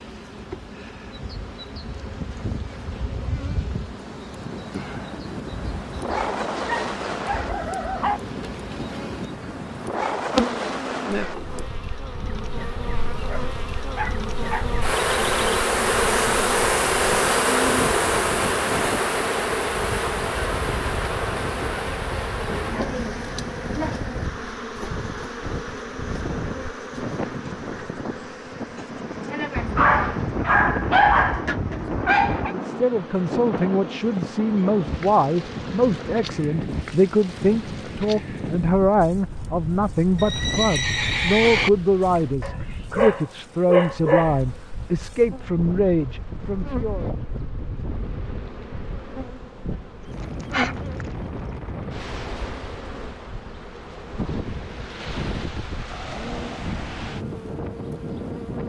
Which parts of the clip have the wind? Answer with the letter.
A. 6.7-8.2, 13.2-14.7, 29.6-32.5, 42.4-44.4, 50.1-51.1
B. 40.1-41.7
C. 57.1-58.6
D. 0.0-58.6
D.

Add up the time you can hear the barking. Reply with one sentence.
You can hear the barking for 9 seconds altogether.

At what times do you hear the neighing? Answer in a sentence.
You can hear the neighing from 40.1 to 41.7 s.